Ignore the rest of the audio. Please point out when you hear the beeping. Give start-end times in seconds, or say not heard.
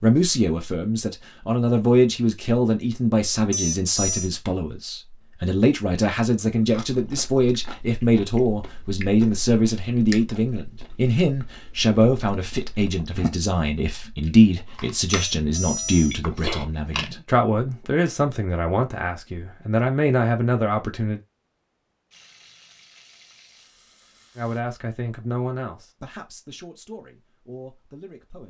3.5-4.3, 15.1-16.2.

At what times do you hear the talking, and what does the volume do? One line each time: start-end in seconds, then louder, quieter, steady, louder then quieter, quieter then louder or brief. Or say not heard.
0.0-21.2 steady
24.4-28.4 quieter.